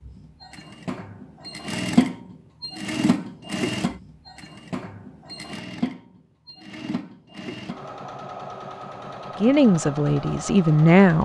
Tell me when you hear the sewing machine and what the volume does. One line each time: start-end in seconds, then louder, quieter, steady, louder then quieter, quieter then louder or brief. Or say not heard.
0.1-11.1 quieter.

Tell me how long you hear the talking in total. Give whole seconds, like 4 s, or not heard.
2 s.